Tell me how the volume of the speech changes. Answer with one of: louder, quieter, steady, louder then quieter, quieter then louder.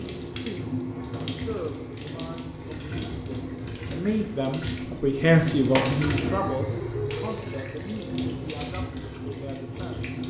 louder then quieter.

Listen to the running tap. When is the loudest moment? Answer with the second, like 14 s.
6 s.